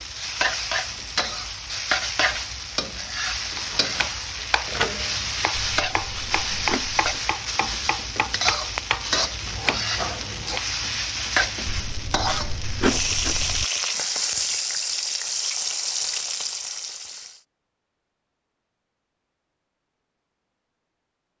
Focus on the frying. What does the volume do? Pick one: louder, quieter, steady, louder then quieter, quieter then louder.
steady.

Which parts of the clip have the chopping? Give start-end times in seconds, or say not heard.
3.5-10.7.